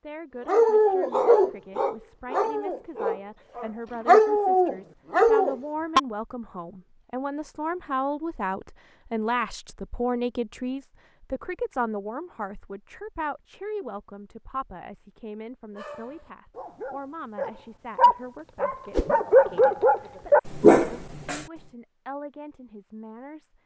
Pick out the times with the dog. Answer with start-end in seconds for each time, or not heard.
0.5-6.0, 15.8-21.4.